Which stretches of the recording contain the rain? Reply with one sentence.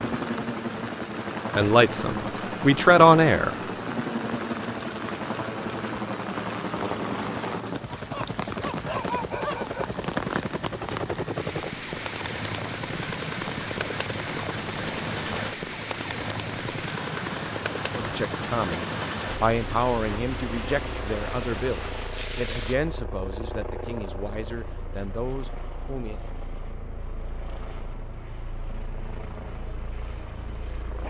The rain can be heard from 0.0 to 22.8 s.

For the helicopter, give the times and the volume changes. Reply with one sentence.
You can hear the helicopter from 0.0 to 31.0 s, getting quieter.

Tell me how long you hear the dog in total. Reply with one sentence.
The dog can be heard for 2 seconds in total.